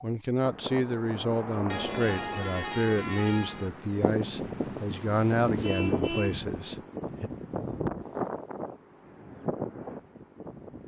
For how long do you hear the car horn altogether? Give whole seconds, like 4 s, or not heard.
3 s.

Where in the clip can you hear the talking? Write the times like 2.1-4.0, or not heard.
0.0-7.3.